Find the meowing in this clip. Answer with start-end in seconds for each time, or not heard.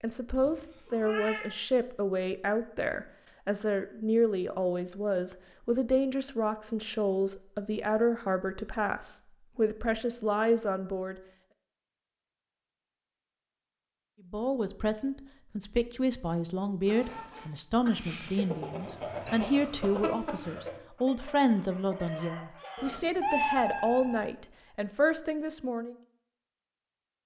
0.3-1.5, 22.8-24.3.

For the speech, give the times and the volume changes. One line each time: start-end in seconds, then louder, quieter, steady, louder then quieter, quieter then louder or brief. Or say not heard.
0.0-11.2 steady
14.3-25.9 steady.